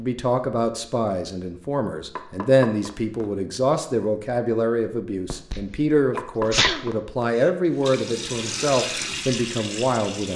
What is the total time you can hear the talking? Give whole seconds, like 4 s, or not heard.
10 s.